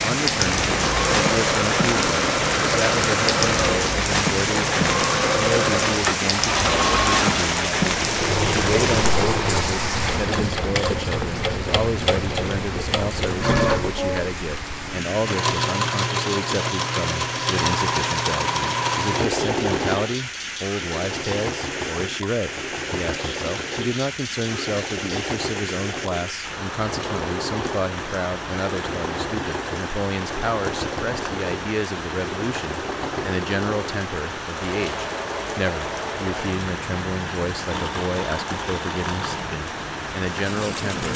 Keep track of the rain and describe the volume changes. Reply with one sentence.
The volume of the rain goes down.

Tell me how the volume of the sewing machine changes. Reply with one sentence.
The loudness of the sewing machine goes down.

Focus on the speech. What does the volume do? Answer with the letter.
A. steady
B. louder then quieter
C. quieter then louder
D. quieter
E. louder
A.